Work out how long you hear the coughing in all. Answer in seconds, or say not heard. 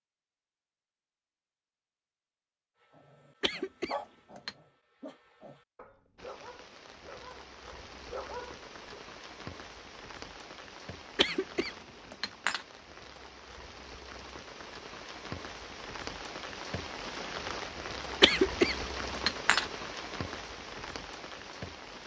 4 s.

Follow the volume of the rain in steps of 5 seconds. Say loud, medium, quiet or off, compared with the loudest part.
off, medium, medium, loud, loud.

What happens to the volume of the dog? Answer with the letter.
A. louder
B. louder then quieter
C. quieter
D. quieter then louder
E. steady
D.